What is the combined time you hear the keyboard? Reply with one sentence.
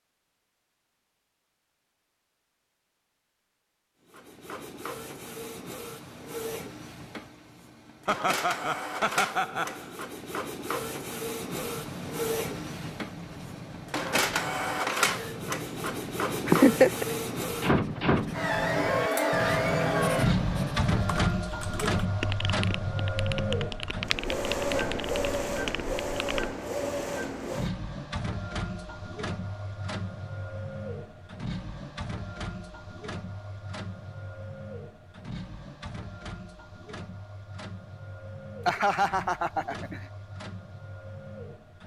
You can hear the keyboard for 6 seconds altogether.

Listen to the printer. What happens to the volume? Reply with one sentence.
The volume of the printer goes up, then down.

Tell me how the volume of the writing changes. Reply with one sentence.
The loudness of the writing goes up.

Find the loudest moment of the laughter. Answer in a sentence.
The volume of the laughter peaks at 17 seconds.